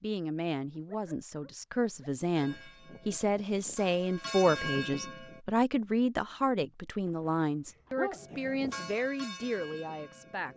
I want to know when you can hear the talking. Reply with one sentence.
The talking can be heard from 0.0 to 10.5 s.